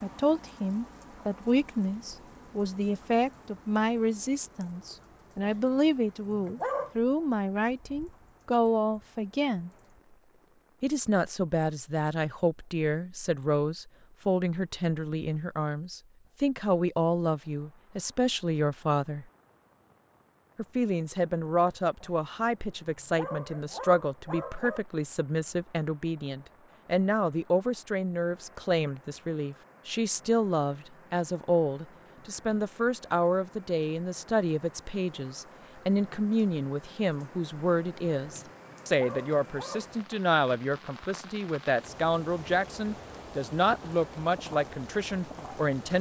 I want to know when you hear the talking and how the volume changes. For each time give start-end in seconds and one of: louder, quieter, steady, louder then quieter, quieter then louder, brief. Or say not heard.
0.0-9.7 steady
10.8-19.2 steady
20.6-45.9 steady.